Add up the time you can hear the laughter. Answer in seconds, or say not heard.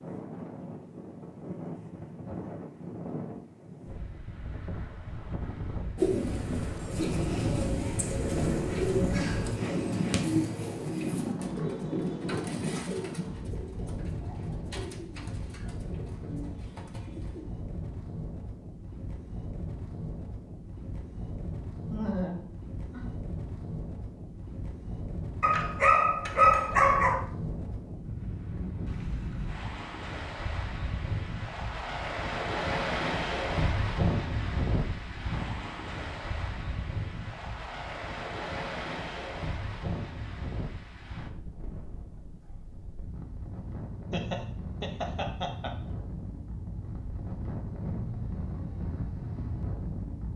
3 s.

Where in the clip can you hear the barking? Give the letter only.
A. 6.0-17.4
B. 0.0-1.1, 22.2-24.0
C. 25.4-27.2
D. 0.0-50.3
C.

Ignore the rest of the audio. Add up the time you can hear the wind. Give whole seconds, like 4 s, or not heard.
50 s.